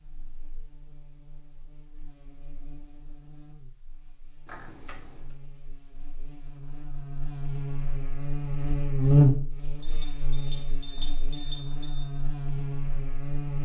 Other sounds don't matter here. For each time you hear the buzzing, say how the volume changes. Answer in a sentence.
The buzzing can be heard from 0.0 to 13.6 s, getting louder then quieter.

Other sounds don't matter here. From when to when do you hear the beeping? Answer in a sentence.
You can hear the beeping from 4.5 to 5.2 s and from 9.8 to 12.1 s.